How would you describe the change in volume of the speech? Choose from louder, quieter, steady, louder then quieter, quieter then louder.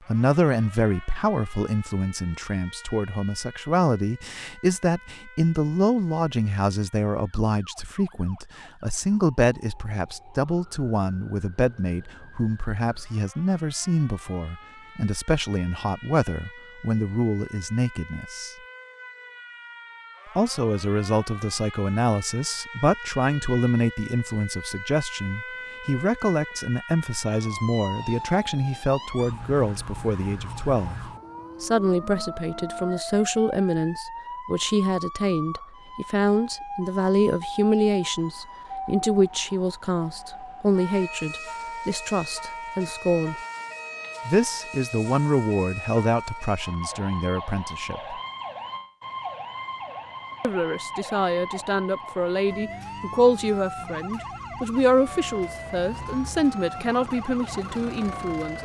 steady.